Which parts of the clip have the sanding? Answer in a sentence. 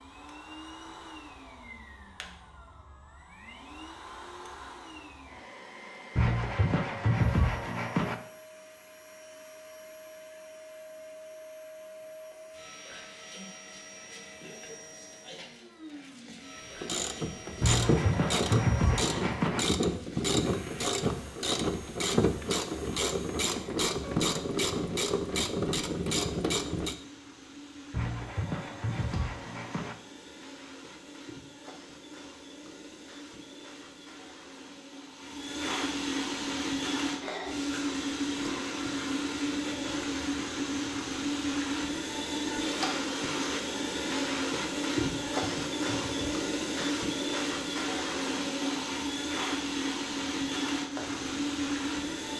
The sanding can be heard from 6.2 to 8.2 s, from 17.6 to 19.6 s, from 27.9 to 29.9 s and from 45.0 to 47.0 s.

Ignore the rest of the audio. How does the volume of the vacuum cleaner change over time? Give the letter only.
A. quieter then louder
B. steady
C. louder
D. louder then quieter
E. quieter
C.